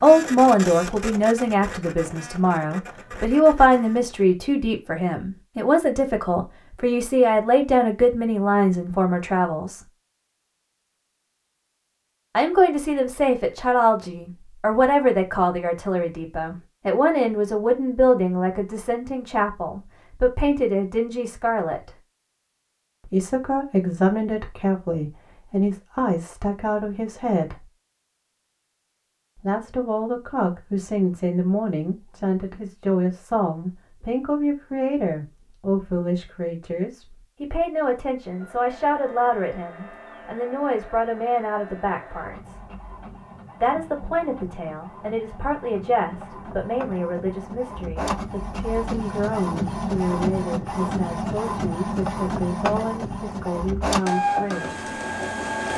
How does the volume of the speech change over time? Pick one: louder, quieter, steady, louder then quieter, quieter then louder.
quieter.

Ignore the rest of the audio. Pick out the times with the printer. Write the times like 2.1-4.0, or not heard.
0.0-4.2, 38.2-55.7.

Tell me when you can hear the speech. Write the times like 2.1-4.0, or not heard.
0.0-9.8, 12.3-21.9, 23.1-27.6, 29.4-42.6, 43.6-54.8.